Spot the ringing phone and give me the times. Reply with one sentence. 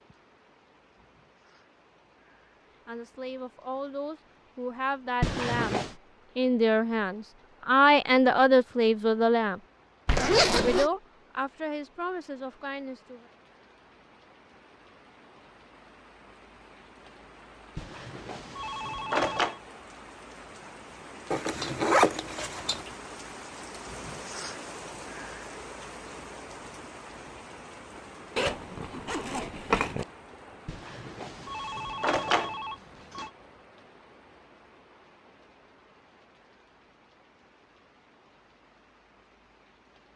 You can hear the ringing phone from 5.2 to 6.0 s, from 17.8 to 19.6 s and from 30.6 to 33.3 s.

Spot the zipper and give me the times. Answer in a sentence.
You can hear the zipper from 10.1 to 10.9 s, from 21.3 to 22.9 s and from 28.4 to 30.1 s.